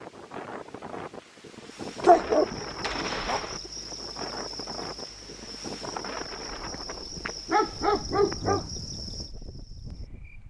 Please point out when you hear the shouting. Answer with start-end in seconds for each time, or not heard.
not heard.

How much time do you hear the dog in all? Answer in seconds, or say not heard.
4 s.